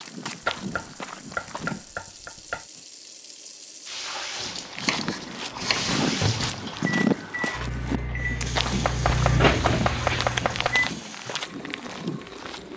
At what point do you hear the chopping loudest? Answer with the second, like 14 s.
10 s.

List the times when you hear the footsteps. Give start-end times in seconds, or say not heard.
0.0-1.9, 4.3-12.7.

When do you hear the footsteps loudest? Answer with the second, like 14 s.
7 s.